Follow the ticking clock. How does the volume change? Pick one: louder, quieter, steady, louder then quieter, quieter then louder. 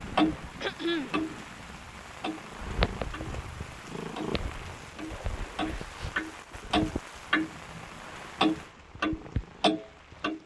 quieter then louder.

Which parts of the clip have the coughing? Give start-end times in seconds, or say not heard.
0.6-1.1.